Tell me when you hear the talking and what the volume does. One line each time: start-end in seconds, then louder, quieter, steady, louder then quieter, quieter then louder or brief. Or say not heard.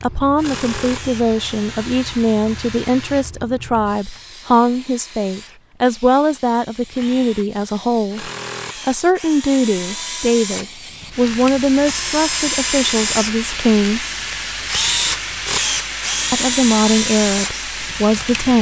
0.0-14.1 steady
16.3-18.5 brief.